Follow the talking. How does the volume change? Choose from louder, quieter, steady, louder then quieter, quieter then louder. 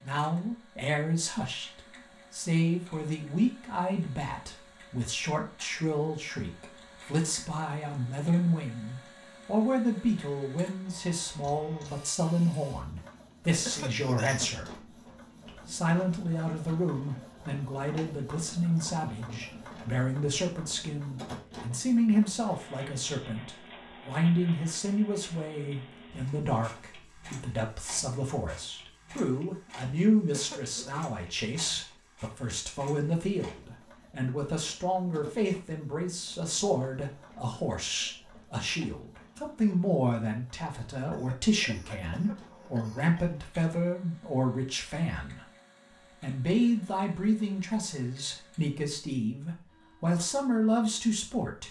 steady.